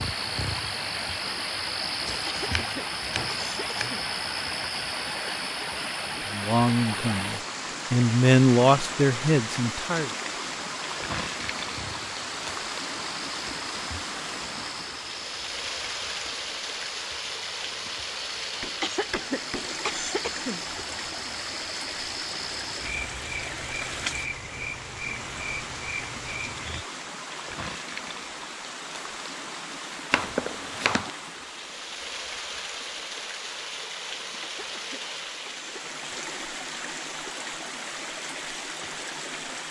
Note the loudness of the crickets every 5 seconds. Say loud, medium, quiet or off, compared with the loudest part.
loud, medium, medium, medium, loud, loud, off, off.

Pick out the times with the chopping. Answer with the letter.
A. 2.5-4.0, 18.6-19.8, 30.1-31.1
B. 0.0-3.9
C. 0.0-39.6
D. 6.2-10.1
A.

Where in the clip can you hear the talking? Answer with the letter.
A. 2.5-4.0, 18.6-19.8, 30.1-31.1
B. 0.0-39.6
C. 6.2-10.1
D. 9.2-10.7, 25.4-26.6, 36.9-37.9
C.